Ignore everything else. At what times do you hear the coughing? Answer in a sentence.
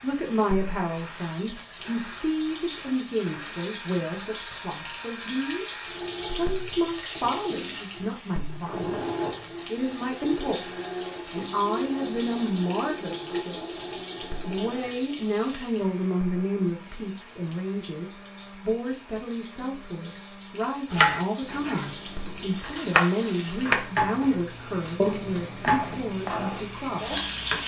The coughing can't be heard in this clip.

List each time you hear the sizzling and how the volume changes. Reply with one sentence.
You can hear the sizzling from 0.0 to 27.6 s, getting quieter then louder.